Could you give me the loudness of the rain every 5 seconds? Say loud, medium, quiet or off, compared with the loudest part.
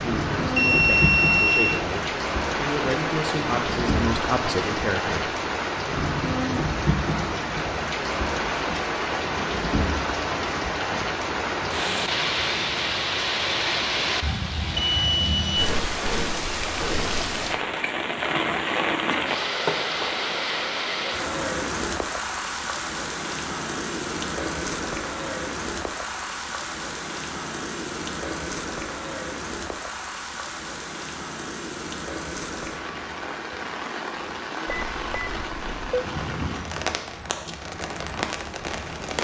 loud, loud, loud, loud, loud, medium, medium, medium.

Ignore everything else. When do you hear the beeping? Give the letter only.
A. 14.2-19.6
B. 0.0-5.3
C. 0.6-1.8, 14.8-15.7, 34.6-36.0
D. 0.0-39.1
C.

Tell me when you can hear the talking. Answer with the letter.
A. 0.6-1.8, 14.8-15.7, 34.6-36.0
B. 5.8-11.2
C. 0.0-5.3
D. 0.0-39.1
C.